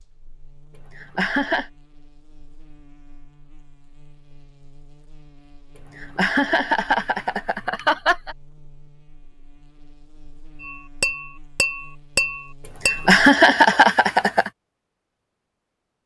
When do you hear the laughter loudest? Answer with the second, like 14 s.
13 s.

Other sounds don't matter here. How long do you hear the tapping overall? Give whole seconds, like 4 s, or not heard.
3 s.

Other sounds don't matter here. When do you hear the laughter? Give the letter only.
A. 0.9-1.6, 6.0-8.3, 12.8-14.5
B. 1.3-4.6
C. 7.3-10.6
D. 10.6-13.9
A.